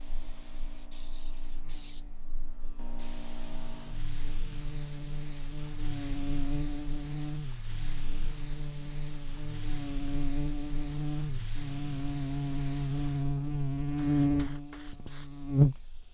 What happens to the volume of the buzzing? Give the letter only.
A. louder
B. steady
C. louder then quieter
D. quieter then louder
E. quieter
A.